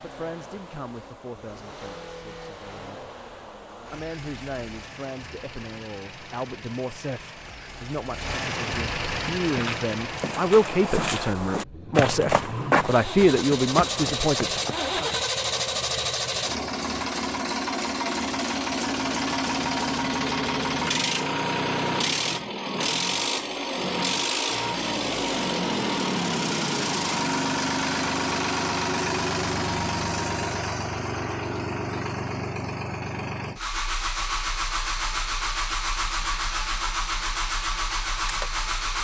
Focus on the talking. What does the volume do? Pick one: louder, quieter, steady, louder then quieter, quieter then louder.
louder.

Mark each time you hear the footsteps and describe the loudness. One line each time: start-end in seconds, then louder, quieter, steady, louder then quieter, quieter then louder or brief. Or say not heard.
9.4-15.2 louder then quieter.